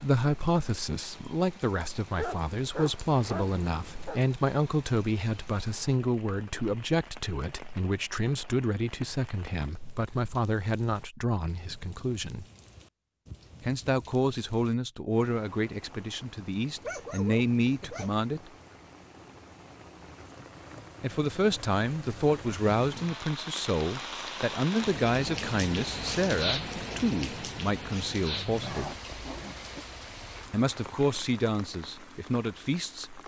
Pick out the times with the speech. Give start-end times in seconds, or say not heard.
0.0-12.4, 13.6-18.5, 21.0-28.9, 30.5-33.2.